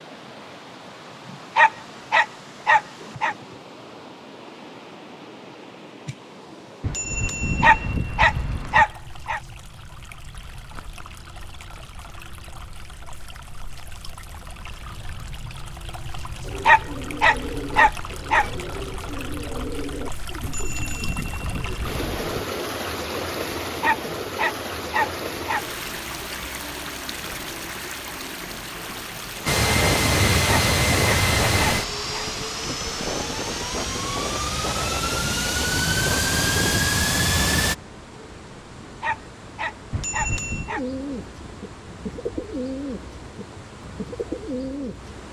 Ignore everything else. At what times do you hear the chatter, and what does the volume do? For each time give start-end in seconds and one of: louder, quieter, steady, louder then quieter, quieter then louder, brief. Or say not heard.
not heard.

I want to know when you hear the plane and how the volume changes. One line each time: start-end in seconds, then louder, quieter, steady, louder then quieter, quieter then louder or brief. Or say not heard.
29.4-37.8 quieter then louder.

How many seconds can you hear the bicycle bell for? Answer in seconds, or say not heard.
5 s.